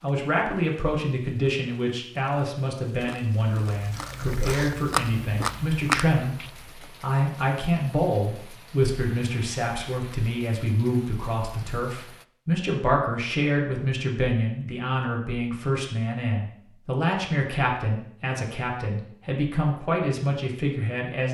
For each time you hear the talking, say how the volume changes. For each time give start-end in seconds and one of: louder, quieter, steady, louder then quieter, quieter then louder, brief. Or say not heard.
0.0-21.2 steady.